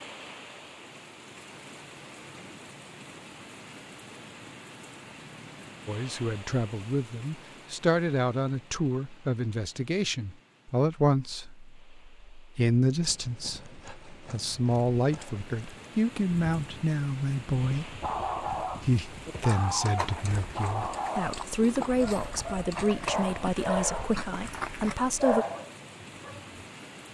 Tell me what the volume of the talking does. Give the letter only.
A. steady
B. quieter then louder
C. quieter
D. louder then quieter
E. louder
A.